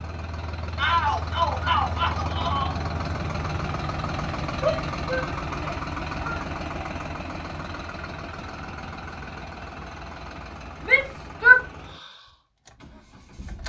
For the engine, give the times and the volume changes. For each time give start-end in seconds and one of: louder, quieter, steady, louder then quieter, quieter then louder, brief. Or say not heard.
0.0-13.6 quieter.